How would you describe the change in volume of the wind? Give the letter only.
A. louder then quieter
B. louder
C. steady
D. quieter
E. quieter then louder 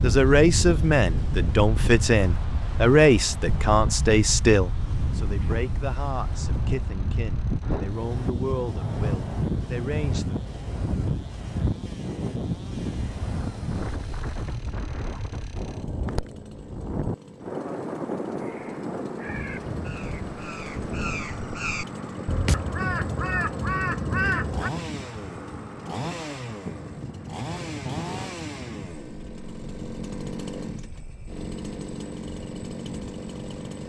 D.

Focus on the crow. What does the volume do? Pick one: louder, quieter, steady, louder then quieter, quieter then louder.
louder.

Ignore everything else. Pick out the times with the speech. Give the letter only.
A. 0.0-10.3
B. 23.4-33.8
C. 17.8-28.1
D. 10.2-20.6
A.